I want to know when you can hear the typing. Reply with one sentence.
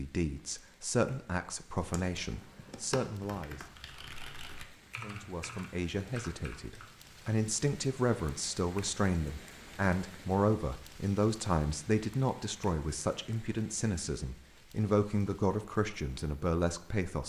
You can hear the typing from 1.8 to 7.2 s.